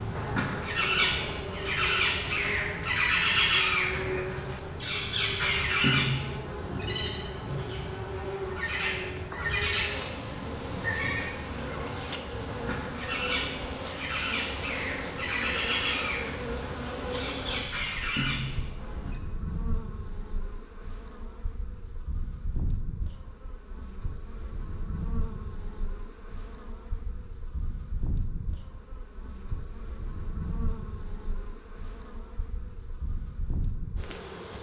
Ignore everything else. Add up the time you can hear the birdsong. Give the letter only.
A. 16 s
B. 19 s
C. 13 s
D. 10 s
B.